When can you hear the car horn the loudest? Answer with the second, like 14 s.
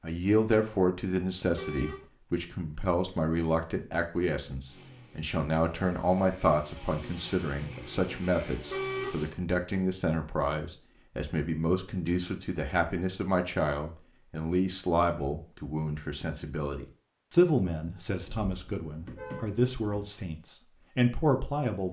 9 s.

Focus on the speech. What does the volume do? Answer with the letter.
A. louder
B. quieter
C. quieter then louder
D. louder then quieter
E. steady
E.